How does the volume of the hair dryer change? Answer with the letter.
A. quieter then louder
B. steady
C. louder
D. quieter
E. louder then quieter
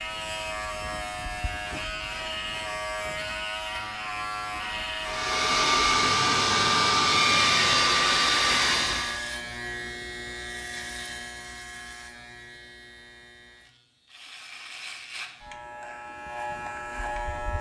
B.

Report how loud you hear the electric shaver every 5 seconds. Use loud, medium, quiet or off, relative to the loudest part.
loud, loud, medium, loud.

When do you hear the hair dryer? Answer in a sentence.
The hair dryer can be heard from 5.0 to 9.2 s.